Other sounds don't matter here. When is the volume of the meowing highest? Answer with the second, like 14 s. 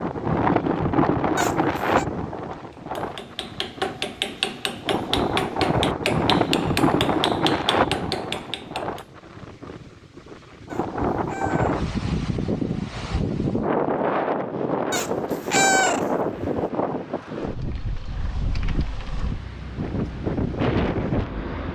16 s.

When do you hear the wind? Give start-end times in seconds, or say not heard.
0.0-21.6.